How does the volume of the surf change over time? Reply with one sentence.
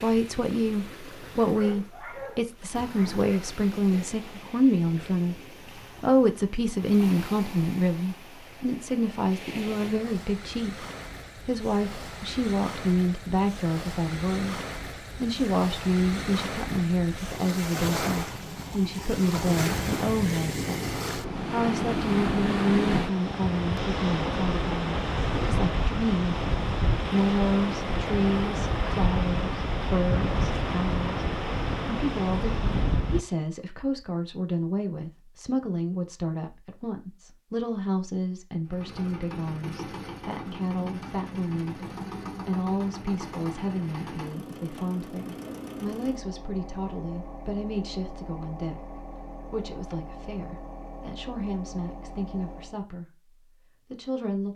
The loudness of the surf goes up.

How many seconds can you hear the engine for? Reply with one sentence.
The engine can be heard for 14 seconds in total.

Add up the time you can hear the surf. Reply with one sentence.
The surf can be heard for 33 seconds in total.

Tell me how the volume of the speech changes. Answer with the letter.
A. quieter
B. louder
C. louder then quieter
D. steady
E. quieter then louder
A.